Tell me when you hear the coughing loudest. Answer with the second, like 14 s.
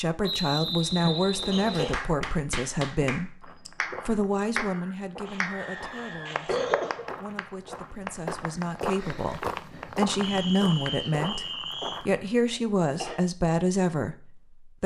7 s.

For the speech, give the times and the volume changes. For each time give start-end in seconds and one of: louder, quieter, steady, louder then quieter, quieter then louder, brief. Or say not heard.
0.0-14.8 quieter then louder.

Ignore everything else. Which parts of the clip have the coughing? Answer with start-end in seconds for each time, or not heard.
1.0-1.9, 5.2-7.0, 12.5-13.2.